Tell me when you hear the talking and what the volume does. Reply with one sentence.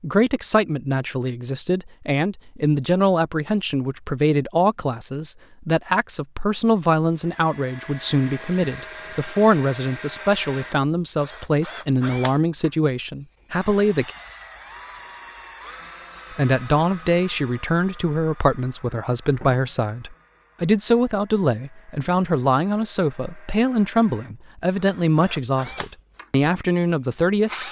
The talking can be heard from 0.0 to 14.1 s, at a steady volume; and from 16.4 to 27.5 s, at a steady volume.